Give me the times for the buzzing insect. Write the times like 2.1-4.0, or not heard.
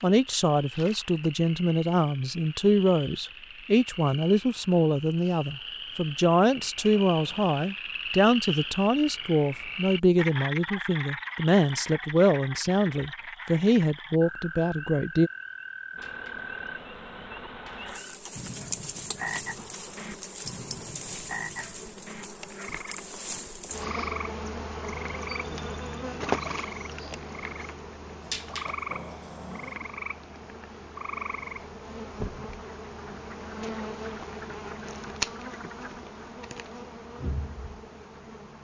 15.9-38.5.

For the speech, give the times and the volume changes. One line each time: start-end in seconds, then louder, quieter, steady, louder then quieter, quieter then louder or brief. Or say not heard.
0.0-15.3 steady.